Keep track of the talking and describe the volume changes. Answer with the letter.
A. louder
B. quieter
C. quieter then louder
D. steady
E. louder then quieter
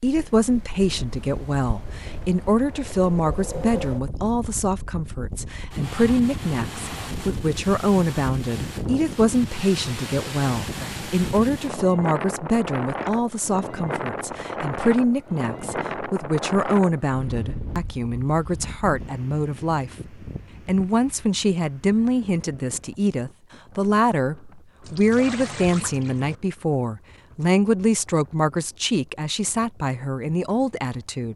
D.